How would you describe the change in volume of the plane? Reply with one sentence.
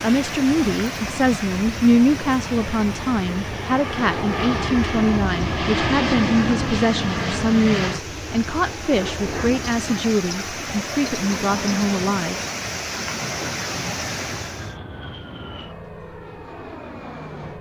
The volume of the plane goes up, then down.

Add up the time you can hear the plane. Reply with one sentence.
The plane can be heard for 17 seconds in total.